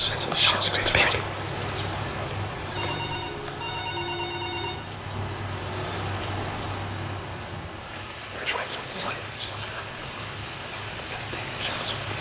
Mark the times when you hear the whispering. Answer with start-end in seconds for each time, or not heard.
0.0-3.0, 8.3-12.1.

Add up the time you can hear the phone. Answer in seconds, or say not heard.
2 s.